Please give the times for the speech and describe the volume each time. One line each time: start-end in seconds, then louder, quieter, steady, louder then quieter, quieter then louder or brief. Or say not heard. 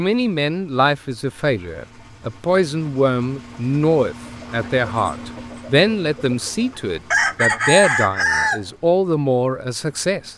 0.0-10.3 steady.